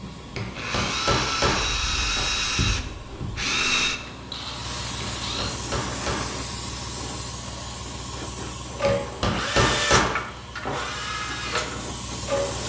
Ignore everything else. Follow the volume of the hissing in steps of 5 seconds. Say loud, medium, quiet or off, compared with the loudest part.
medium, loud, loud.